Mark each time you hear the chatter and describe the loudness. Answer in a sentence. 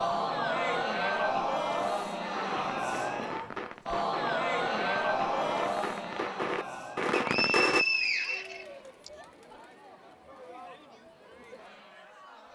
You can hear the chatter from 0.0 to 12.4 s, getting quieter.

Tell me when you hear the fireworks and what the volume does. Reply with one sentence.
The fireworks can be heard from 2.4 to 7.8 s, getting louder.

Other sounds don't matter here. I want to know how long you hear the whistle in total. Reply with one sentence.
You can hear the whistle for 2 seconds altogether.